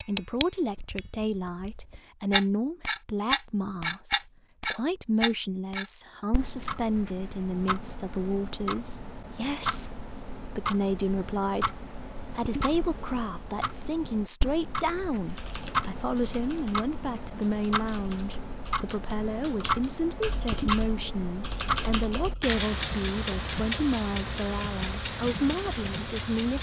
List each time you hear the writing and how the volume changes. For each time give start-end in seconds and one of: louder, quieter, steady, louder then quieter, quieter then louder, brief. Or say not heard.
not heard.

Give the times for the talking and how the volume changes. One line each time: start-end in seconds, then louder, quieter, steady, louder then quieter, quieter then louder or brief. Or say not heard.
0.0-26.5 steady.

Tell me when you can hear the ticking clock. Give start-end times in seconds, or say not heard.
0.0-26.5.